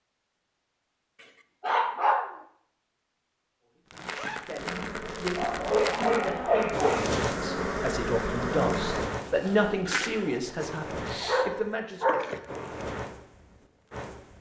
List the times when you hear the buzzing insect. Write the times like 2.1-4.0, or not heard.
4.5-9.1.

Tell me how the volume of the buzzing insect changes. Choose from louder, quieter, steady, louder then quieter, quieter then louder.
louder.